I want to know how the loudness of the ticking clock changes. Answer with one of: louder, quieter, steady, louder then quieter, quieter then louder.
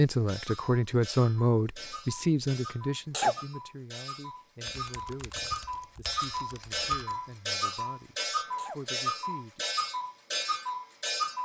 louder.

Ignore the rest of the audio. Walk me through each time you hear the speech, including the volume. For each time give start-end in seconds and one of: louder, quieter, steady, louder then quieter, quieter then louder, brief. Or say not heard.
0.0-9.7 quieter.